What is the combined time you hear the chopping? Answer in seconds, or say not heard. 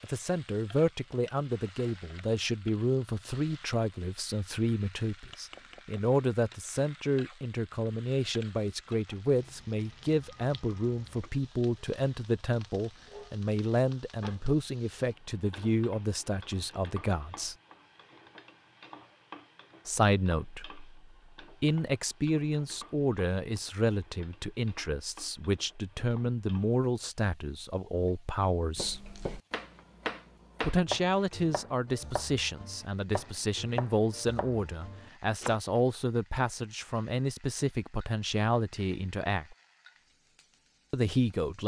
7 s.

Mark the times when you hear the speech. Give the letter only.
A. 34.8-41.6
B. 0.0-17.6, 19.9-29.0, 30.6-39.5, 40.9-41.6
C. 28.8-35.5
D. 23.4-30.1
B.